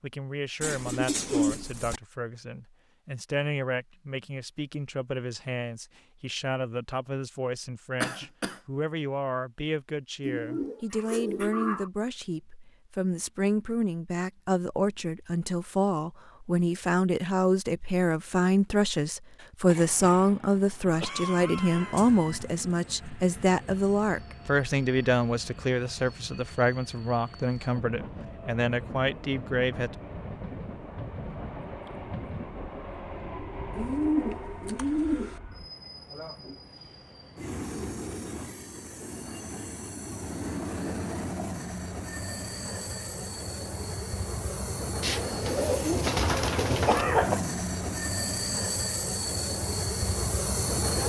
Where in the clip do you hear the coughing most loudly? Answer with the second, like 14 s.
47 s.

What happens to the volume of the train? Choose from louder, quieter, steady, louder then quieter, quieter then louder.
louder.